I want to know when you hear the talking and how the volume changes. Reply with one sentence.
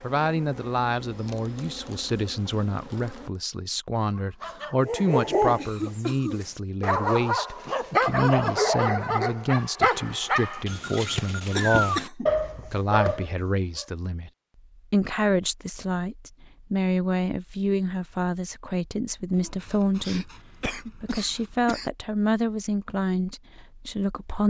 The talking can be heard from 0.0 to 14.3 s, at a steady volume; and from 14.9 to 24.4 s, at a steady volume.